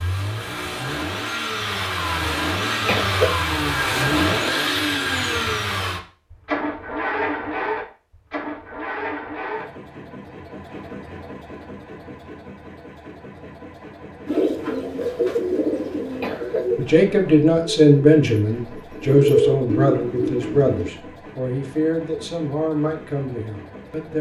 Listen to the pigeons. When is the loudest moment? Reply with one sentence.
The loudest moment of the pigeons is at 19 seconds.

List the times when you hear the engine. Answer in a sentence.
You can hear the engine from 0.0 to 24.1 s.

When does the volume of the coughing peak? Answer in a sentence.
The loudest moment of the coughing is at 3 seconds.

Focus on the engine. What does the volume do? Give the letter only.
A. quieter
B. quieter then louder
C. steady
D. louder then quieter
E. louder
A.